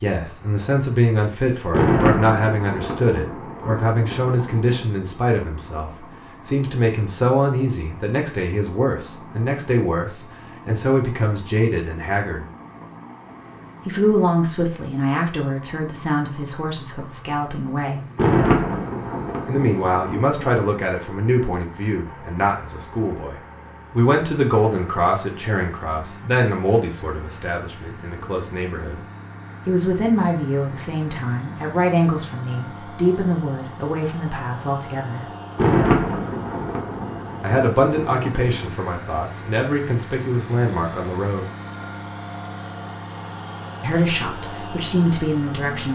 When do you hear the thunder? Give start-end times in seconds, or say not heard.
1.7-4.8, 18.1-20.6, 35.5-38.7.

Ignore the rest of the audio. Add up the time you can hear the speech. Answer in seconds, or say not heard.
38 s.